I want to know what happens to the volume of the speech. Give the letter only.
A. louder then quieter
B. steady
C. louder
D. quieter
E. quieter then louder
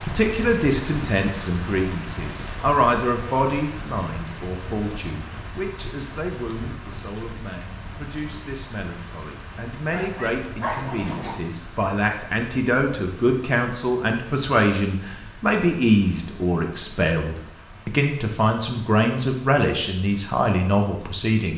E.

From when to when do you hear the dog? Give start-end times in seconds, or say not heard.
9.9-11.5.